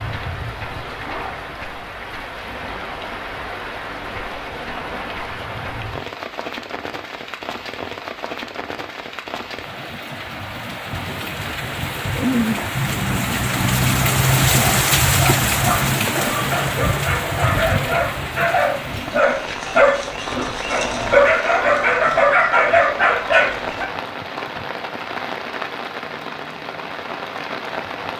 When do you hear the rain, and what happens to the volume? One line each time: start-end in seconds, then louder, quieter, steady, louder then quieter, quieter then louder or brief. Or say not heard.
0.0-28.1 louder then quieter.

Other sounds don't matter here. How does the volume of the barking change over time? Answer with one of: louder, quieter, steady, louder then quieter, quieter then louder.
louder.